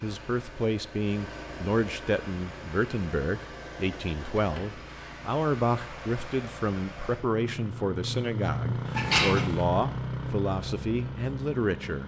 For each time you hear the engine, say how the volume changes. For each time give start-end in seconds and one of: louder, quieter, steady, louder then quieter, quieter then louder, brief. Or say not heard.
0.0-12.0 louder.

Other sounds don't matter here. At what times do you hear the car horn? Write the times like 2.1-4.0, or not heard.
8.9-9.6.